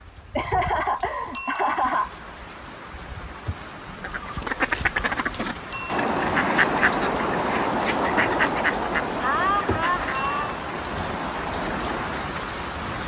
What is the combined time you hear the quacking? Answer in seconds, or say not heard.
9 s.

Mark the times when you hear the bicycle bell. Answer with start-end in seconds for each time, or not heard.
1.4-1.9, 5.7-6.2, 10.2-10.7.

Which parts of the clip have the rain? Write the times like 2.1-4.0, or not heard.
0.0-13.0.